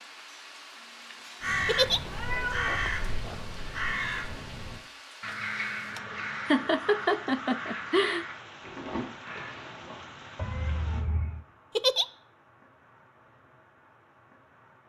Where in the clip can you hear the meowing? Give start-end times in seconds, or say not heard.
2.0-3.5, 10.3-11.4.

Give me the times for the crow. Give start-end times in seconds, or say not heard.
1.4-10.1.